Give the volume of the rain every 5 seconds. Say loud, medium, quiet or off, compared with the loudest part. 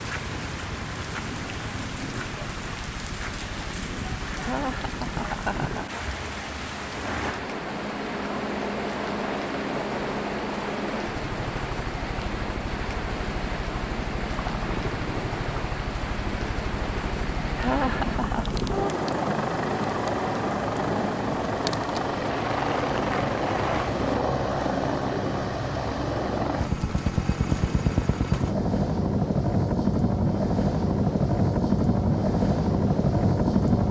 loud, loud, loud, loud, loud, off, off.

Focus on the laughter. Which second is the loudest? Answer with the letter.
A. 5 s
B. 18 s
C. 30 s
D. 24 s
B.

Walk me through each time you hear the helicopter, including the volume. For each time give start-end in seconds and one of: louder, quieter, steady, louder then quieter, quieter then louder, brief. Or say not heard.
0.0-33.8 louder.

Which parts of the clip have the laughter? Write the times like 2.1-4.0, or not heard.
4.4-6.0, 17.6-18.5.